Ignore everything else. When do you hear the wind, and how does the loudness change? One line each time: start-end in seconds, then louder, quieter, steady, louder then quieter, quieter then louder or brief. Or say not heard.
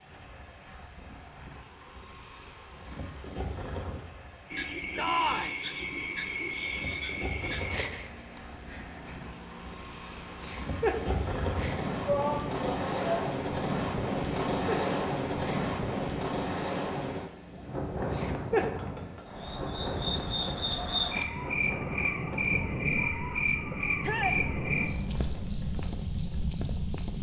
0.0-27.1 louder then quieter.